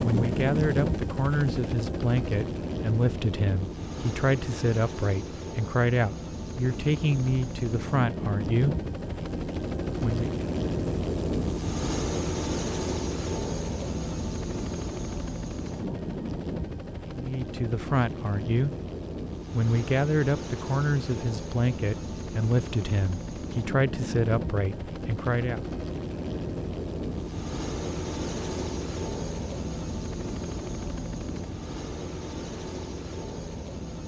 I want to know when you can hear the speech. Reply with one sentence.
You can hear the speech from 0.0 to 8.8 s, from 10.0 to 10.4 s, from 17.1 to 18.8 s and from 19.5 to 25.6 s.